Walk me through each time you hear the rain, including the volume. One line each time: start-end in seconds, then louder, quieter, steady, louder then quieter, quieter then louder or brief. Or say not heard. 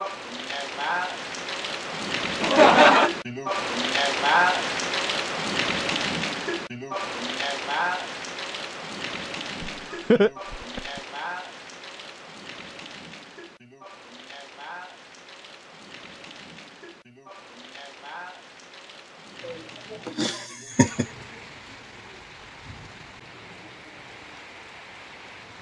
0.0-25.5 quieter.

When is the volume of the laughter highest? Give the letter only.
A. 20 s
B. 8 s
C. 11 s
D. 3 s
D.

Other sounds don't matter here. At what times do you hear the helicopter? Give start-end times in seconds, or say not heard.
not heard.